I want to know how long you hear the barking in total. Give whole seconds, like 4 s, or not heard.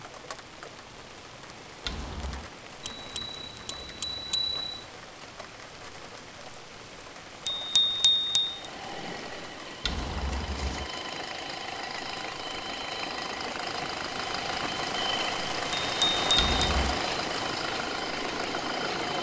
not heard.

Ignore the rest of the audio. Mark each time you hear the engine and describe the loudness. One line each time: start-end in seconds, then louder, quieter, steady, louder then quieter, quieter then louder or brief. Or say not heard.
8.4-19.1 louder.